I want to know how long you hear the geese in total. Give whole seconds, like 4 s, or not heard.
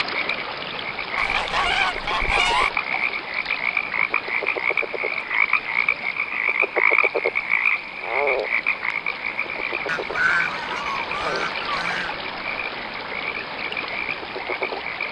4 s.